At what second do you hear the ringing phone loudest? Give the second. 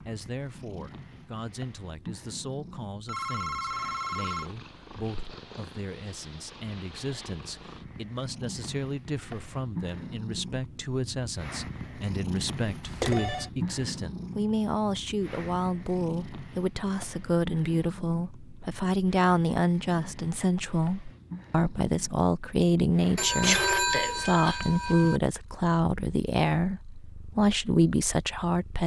24 s.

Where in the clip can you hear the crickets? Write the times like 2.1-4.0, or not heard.
not heard.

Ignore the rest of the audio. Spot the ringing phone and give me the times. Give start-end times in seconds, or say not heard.
3.0-4.5, 12.8-13.5, 23.1-25.2.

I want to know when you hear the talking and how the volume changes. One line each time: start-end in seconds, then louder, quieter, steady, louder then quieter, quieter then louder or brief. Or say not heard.
0.0-28.8 louder.